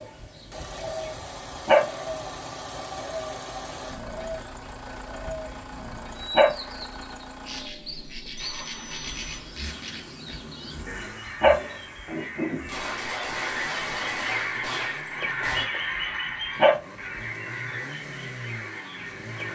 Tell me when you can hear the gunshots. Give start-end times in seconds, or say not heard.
12.7-15.7.